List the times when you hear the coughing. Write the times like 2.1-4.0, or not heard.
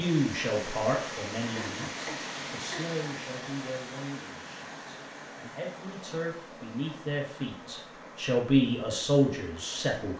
1.6-3.0.